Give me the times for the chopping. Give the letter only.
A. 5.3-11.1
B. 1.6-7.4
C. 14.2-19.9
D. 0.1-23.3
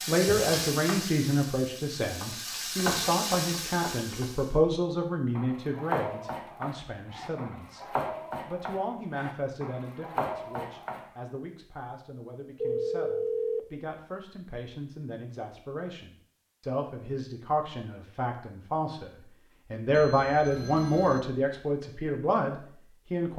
A.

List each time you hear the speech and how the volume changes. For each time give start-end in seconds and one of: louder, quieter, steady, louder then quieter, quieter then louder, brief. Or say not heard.
0.1-23.3 quieter then louder.